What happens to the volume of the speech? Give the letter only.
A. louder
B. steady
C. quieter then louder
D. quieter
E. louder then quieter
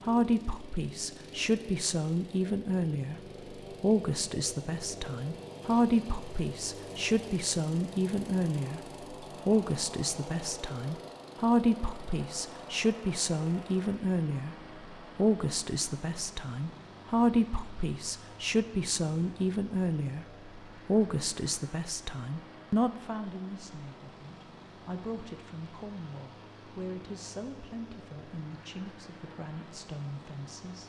D.